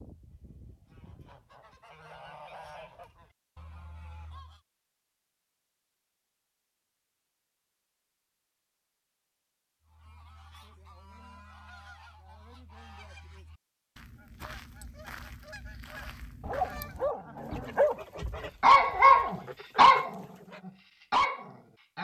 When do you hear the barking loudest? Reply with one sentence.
The loudest moment of the barking is at 19 seconds.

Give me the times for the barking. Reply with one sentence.
The barking can be heard from 16.4 to 17.9 s and from 18.6 to 21.9 s.